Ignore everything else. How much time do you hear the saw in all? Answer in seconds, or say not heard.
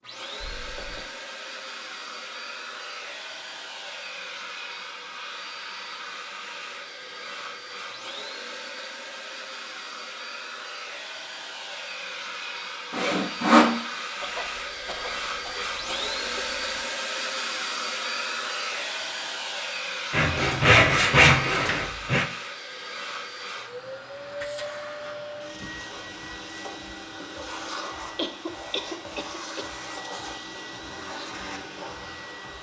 3 s.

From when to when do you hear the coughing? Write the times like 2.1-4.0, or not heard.
0.4-1.0, 14.2-16.9, 28.1-29.6.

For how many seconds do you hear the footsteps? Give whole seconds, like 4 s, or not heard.
not heard.